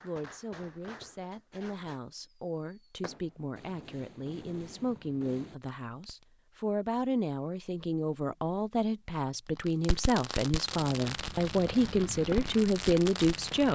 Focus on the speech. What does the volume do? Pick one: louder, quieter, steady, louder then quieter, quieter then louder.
louder.